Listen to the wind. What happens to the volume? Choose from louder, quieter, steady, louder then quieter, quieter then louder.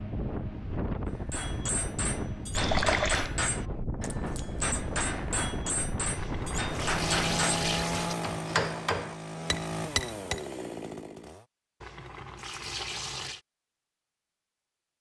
steady.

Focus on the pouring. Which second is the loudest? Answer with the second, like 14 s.
3 s.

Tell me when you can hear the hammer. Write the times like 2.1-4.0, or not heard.
1.2-10.4.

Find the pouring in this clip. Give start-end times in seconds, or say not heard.
2.5-3.3, 6.2-8.2, 11.8-13.4.